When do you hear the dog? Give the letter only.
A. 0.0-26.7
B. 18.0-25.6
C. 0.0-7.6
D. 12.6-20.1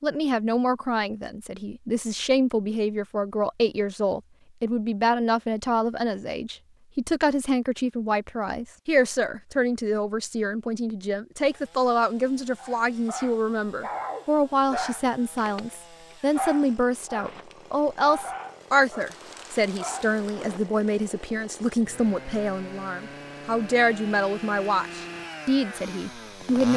D.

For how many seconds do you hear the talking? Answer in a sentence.
You can hear the talking for 27 seconds altogether.